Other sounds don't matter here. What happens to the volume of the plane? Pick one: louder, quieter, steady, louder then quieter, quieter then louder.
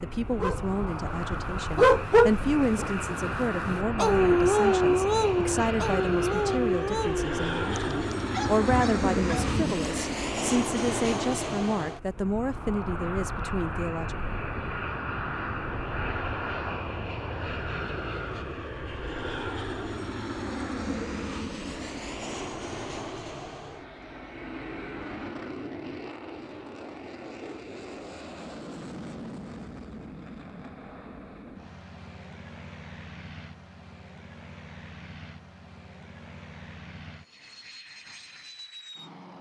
quieter.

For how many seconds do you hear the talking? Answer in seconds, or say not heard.
14 s.